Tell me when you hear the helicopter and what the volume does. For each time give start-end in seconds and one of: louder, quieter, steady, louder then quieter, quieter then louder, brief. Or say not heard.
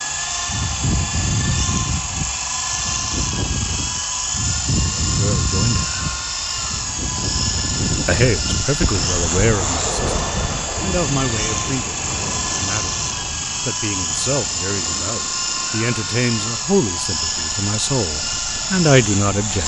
0.0-19.6 steady.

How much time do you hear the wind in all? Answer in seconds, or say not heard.
19 s.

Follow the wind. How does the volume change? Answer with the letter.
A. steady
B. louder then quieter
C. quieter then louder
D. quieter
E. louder
D.